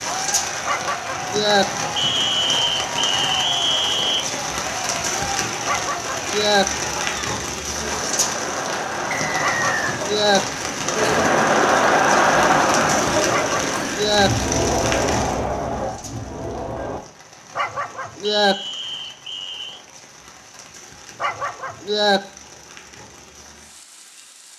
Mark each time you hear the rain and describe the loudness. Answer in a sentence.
You can hear the rain from 0.0 to 24.5 s, getting quieter.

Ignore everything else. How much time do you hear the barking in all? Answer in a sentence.
You can hear the barking for 6 seconds altogether.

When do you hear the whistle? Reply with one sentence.
The whistle can be heard from 1.9 to 4.2 s, from 9.1 to 9.8 s and from 18.2 to 19.8 s.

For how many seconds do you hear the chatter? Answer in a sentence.
The chatter can be heard for 17 seconds in total.